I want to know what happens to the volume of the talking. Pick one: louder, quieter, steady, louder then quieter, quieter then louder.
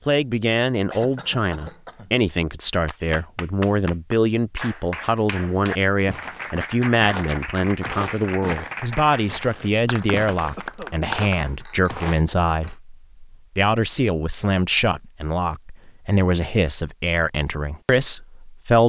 steady.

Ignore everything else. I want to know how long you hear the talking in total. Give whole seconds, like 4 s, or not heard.
19 s.